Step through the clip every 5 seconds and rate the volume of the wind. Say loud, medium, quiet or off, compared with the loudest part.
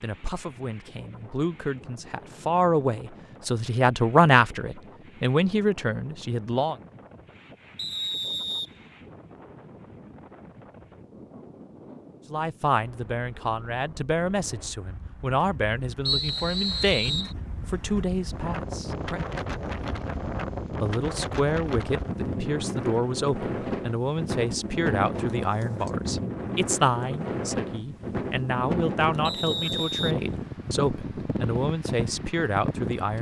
quiet, quiet, quiet, medium, loud, loud, loud.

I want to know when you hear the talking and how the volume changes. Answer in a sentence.
You can hear the talking from 0.0 to 6.8 s, getting louder then quieter; from 12.3 to 19.2 s, at a steady volume; and from 20.8 to 33.1 s, at a steady volume.